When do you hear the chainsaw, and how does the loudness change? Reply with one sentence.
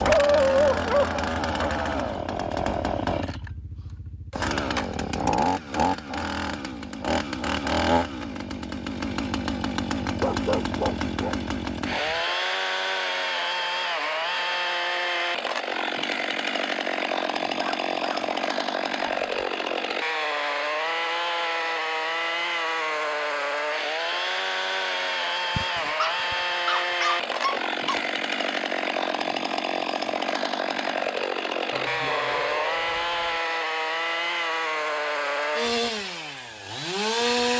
The chainsaw can be heard from 0.0 to 37.5 s, at a steady volume.